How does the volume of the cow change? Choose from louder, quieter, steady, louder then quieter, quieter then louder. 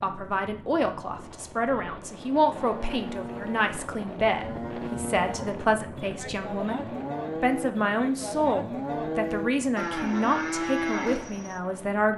louder.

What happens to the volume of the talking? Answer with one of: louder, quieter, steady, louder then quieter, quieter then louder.
steady.